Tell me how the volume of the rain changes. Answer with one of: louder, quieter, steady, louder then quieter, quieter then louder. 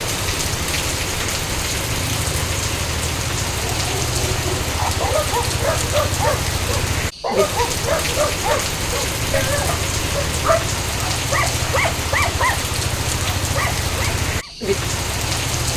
steady.